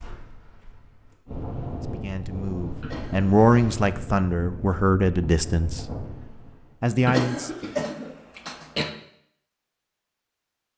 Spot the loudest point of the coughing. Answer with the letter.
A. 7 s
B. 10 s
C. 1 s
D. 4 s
A.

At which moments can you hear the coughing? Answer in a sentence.
The coughing can be heard from 2.8 to 3.8 s and from 7.0 to 8.9 s.